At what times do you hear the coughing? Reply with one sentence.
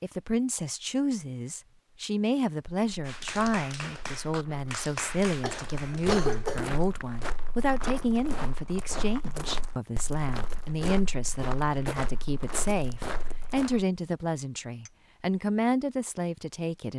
You can hear the coughing from 5.4 to 6.8 s.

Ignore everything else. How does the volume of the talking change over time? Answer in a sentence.
The loudness of the talking stays about the same.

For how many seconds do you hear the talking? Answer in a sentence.
The talking can be heard for 17 seconds in total.